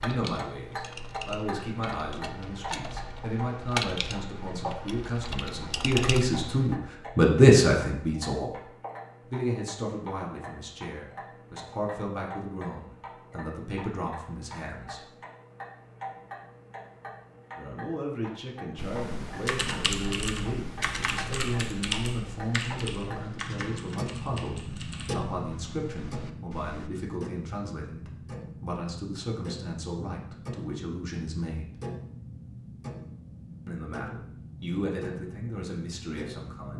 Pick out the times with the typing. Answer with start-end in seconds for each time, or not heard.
0.0-6.8, 18.8-26.9.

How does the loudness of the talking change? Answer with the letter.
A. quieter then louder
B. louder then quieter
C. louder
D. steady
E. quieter
B.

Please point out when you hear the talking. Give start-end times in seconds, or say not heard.
0.0-8.6, 9.3-15.1, 17.6-31.8, 33.6-36.7.